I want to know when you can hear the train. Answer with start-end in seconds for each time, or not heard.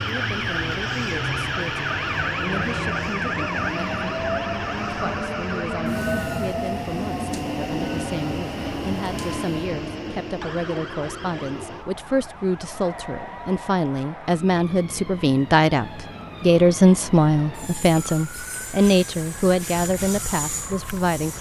0.0-21.3.